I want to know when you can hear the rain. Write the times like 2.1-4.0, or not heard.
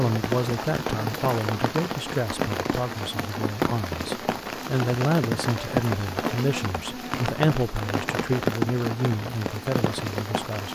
0.0-10.7.